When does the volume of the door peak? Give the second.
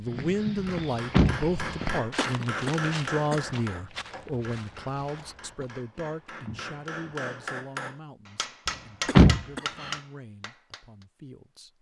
9 s.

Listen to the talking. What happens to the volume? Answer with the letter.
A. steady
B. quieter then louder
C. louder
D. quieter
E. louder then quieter
D.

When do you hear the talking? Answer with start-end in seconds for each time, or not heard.
0.0-11.7.